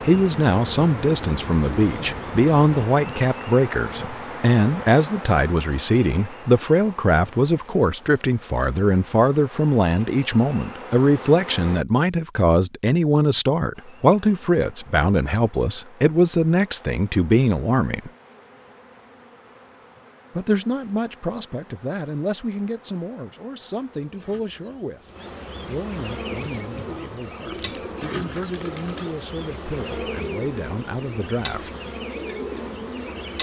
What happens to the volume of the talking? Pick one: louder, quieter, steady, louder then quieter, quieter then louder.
quieter.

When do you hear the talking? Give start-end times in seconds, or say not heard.
0.1-18.1, 20.4-25.1, 25.6-31.7.